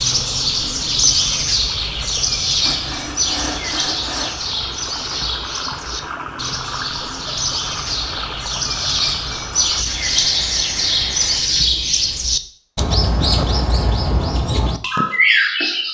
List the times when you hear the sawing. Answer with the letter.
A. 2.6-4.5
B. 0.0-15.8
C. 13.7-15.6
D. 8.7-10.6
A.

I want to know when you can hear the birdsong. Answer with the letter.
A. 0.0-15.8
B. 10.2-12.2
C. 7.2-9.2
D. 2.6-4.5
A.